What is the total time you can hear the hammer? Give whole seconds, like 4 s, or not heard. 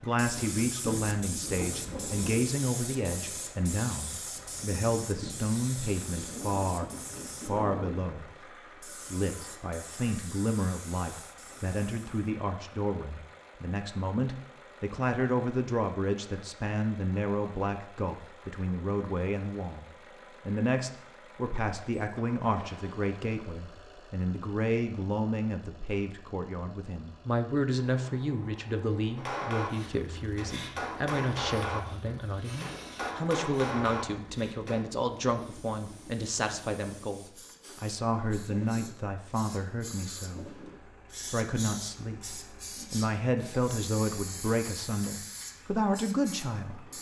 6 s.